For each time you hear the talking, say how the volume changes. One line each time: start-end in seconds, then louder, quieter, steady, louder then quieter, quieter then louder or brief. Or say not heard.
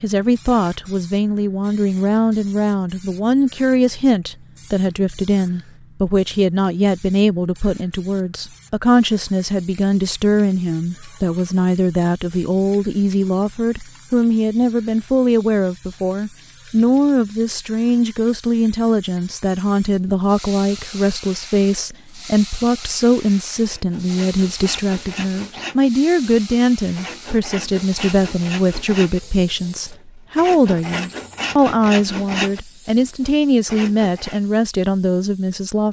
0.0-35.8 steady.